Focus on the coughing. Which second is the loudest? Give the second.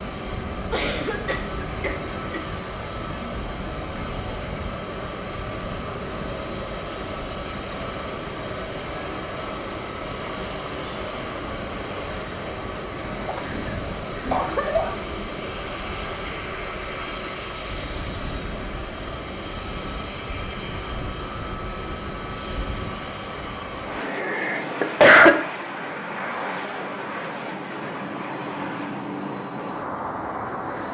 25 s.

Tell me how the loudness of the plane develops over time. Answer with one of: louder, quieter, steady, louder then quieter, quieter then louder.
steady.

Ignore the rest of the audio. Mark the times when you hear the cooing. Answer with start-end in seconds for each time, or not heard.
not heard.